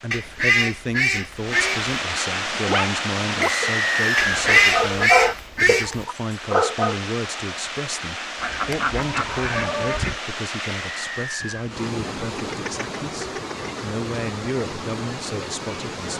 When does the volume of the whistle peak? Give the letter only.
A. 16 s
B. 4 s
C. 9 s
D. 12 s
B.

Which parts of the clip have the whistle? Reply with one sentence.
The whistle can be heard from 3.4 to 4.5 s and from 10.8 to 11.7 s.